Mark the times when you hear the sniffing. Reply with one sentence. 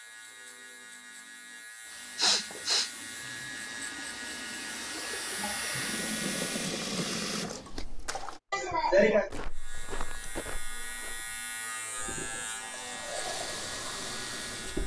You can hear the sniffing from 2.1 to 2.9 s and from 8.5 to 9.3 s.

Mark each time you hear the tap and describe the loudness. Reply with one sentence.
The tap can be heard from 1.8 to 8.4 s, getting louder; and briefly from 11.9 to 14.8 s.